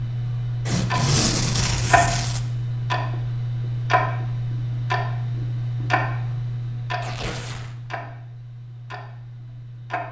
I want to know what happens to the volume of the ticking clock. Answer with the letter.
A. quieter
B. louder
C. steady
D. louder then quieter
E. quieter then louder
A.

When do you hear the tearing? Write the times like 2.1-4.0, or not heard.
0.7-2.4, 7.0-7.8.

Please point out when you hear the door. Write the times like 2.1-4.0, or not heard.
not heard.